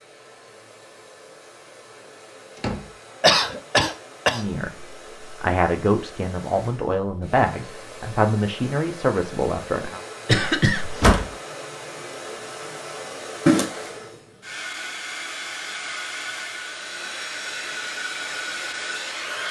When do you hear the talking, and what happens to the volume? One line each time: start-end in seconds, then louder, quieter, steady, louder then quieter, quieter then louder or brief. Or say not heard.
4.3-10.0 steady.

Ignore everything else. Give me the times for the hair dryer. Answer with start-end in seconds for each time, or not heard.
0.0-19.4.